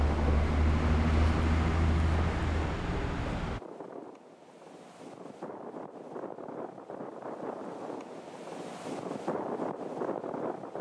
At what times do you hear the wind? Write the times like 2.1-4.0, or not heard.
0.0-10.7.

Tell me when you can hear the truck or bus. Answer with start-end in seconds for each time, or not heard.
0.0-3.6.